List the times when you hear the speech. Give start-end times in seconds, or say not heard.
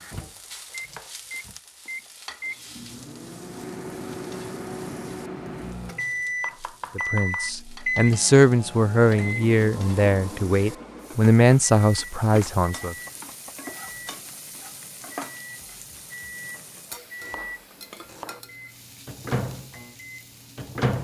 7.0-12.9.